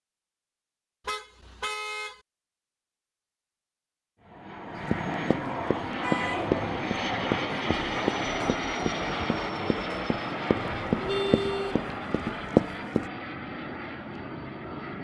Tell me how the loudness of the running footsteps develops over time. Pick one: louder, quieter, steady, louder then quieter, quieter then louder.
quieter then louder.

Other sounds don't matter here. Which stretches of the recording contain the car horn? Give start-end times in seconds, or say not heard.
1.1-2.2, 6.0-6.5, 10.6-11.8.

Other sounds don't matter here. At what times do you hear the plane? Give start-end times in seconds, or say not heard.
4.2-15.0.